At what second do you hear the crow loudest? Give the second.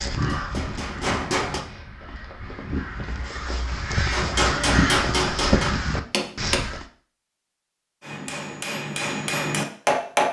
5 s.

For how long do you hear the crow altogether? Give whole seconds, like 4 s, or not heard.
7 s.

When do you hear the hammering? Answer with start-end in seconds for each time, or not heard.
0.1-1.6, 4.1-6.6, 8.0-10.2.